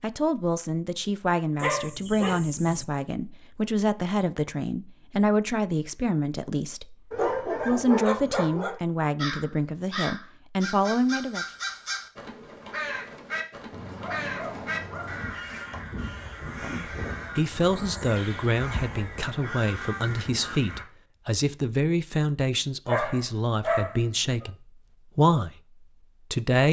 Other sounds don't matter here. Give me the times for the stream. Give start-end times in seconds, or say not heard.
not heard.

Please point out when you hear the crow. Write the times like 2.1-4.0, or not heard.
9.2-20.9.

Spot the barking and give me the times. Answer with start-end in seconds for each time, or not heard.
1.6-2.9, 7.1-8.8, 13.7-15.3, 22.9-24.5.